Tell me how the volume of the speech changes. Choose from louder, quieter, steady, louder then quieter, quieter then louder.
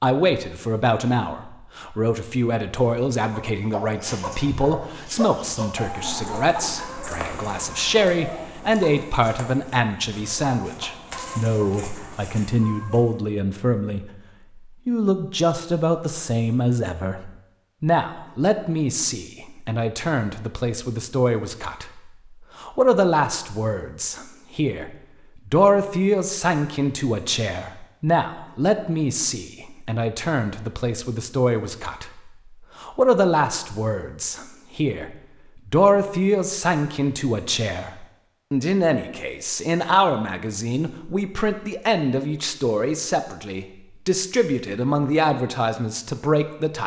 steady.